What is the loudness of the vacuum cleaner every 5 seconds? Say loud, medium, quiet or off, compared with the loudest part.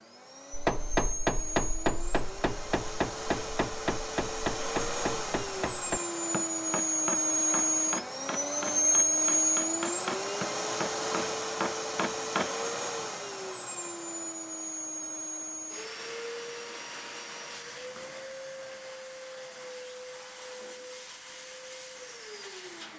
medium, loud, medium, quiet, quiet.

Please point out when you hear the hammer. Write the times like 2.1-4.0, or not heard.
0.5-12.5.